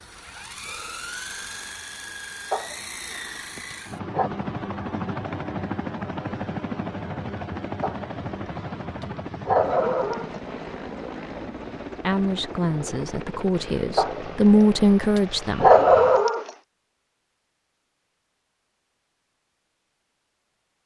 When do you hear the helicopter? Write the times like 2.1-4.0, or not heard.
0.0-16.2.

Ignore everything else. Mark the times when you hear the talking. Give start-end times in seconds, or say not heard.
12.0-15.7.